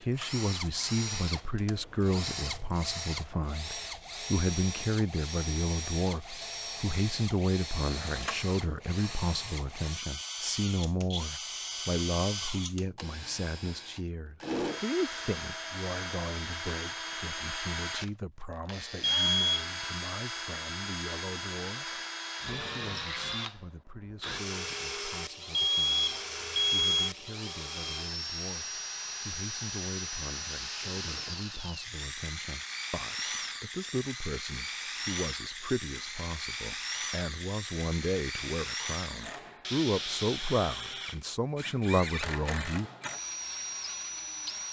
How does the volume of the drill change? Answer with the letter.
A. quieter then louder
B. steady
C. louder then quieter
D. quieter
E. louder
B.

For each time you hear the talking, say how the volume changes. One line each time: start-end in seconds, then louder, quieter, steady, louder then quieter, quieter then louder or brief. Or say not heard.
0.0-42.9 quieter then louder.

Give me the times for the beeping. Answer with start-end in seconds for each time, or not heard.
19.0-19.6, 25.5-27.1.